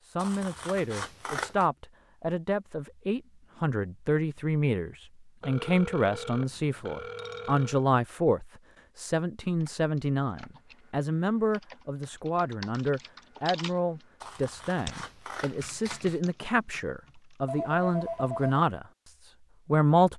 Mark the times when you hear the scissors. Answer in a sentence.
The scissors can be heard from 0.1 to 1.6 s and from 14.2 to 16.2 s.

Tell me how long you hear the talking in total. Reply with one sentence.
You can hear the talking for 20 seconds altogether.